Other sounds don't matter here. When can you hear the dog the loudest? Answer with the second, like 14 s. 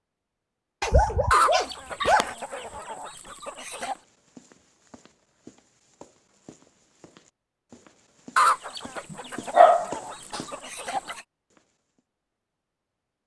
10 s.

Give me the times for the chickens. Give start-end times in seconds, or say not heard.
1.3-4.0, 8.3-11.2.